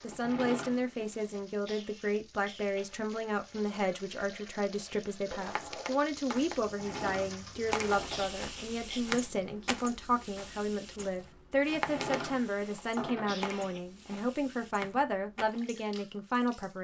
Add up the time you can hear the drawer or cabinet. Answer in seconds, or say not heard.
5 s.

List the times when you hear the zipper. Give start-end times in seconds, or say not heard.
not heard.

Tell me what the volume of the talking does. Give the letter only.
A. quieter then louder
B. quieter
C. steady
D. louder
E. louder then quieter
C.